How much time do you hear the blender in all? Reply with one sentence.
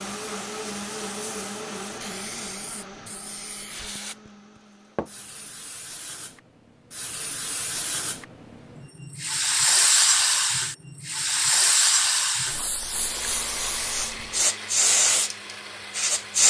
The blender can be heard for 9 seconds in total.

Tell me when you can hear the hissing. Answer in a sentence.
The hissing can be heard from 0.0 to 16.4 s.